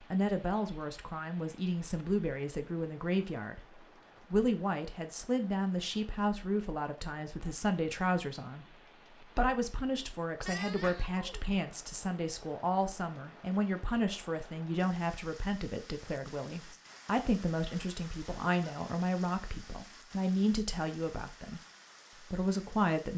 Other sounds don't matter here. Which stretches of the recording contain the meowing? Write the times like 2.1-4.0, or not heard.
10.4-11.4.